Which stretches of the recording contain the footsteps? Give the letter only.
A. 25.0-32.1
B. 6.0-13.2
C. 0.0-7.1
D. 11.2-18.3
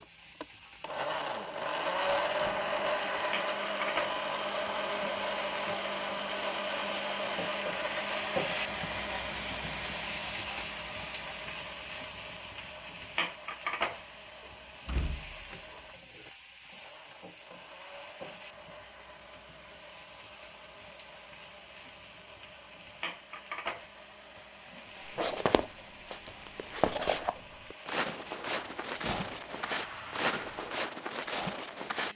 A.